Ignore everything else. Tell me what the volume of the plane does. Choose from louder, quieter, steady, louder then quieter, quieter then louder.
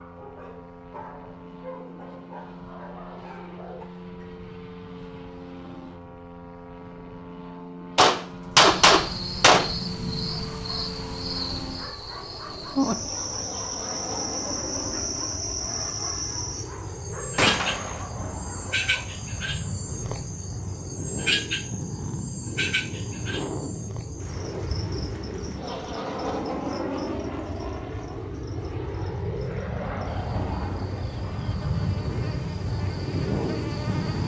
louder.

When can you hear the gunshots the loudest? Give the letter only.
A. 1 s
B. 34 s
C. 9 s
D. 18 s
C.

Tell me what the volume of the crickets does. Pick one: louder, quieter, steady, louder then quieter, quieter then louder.
quieter.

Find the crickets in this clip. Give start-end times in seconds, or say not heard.
8.6-34.2.